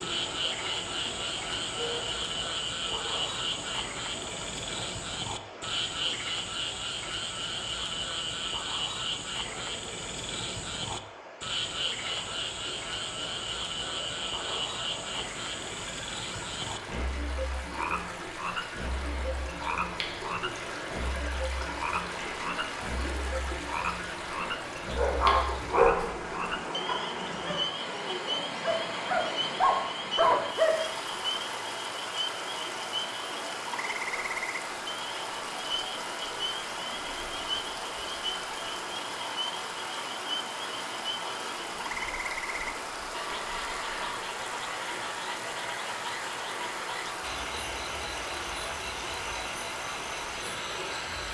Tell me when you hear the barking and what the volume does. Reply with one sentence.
You can hear the barking from 24.9 to 30.8 s, getting quieter then louder.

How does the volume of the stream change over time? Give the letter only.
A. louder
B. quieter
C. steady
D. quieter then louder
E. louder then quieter
A.